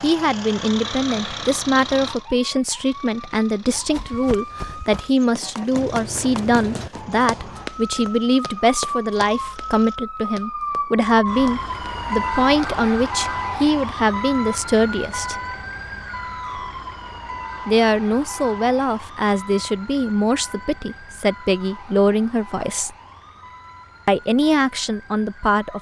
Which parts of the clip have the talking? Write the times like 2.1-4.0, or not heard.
0.0-15.3, 17.6-22.9, 24.1-25.7.